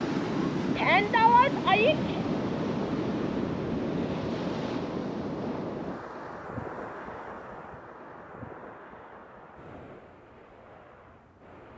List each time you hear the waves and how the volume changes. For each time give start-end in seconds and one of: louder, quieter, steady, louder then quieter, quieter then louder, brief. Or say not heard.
0.0-11.7 quieter.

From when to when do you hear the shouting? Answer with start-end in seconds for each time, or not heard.
0.8-2.2.